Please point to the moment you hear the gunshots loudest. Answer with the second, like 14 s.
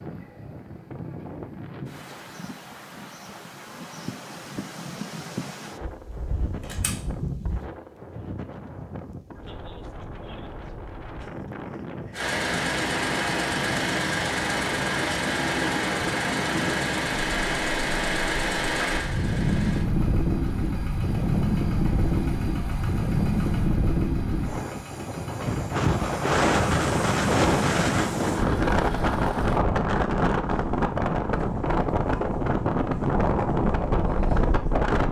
7 s.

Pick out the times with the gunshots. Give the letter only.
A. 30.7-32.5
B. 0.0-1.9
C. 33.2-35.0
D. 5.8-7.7
D.